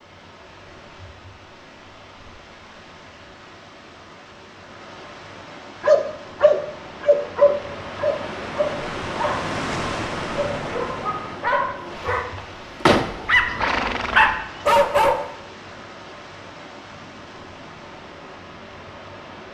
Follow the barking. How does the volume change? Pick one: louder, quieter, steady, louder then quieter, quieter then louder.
quieter then louder.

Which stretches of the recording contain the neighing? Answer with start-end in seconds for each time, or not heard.
13.4-14.8.